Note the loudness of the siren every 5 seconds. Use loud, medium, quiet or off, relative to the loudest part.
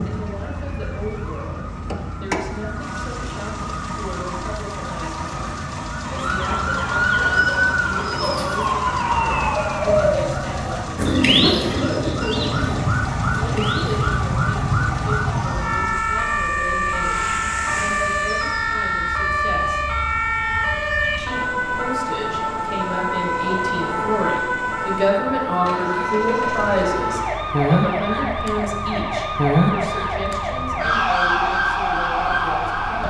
quiet, loud, loud, loud, loud, loud, loud.